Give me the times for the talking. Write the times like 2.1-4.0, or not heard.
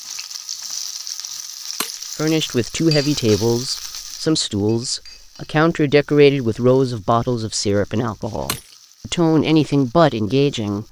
2.1-10.8.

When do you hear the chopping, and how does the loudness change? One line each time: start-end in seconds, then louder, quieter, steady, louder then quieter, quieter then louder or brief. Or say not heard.
not heard.